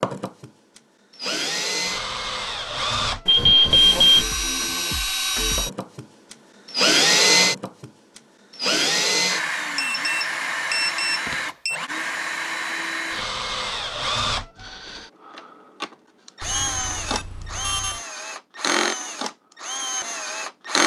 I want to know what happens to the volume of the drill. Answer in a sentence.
The loudness of the drill goes up, then down.